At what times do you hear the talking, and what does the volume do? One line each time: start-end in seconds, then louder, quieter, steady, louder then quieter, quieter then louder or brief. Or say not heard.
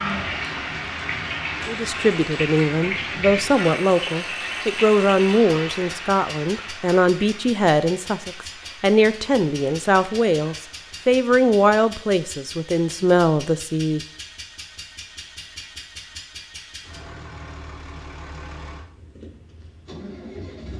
1.6-14.0 steady.